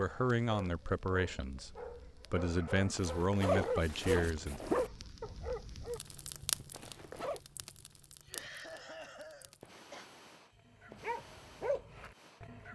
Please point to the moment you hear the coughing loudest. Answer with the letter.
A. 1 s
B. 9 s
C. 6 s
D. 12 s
B.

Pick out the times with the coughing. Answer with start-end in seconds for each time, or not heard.
8.2-10.1.